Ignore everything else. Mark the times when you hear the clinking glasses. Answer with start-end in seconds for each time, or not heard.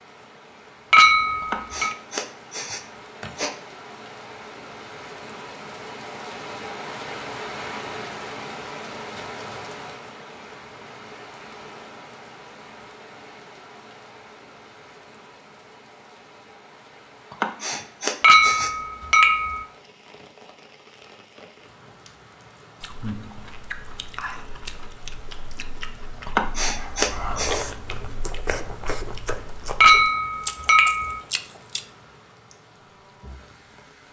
0.9-1.9, 18.2-19.6, 29.8-31.2.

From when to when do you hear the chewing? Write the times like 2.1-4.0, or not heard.
22.8-31.9.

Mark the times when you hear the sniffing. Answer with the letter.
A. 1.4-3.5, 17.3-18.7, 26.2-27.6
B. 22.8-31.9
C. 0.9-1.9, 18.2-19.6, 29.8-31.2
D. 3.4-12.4
A.